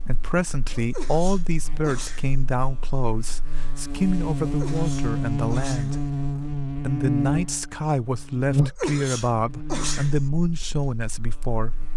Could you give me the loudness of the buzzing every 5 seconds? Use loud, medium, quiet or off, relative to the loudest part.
medium, loud, quiet.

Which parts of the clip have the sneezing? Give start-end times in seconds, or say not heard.
0.7-2.4, 4.4-6.0, 8.6-10.2.